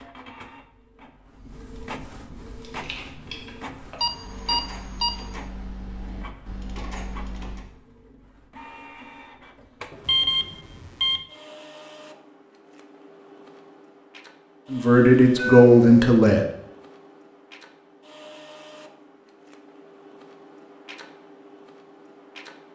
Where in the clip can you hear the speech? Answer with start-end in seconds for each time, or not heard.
14.7-16.4.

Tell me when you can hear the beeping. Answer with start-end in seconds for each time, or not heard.
4.0-5.2, 10.1-11.2, 15.3-16.1.